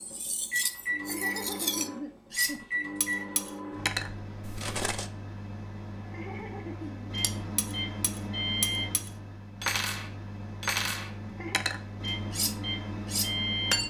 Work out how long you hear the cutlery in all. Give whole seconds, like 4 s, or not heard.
12 s.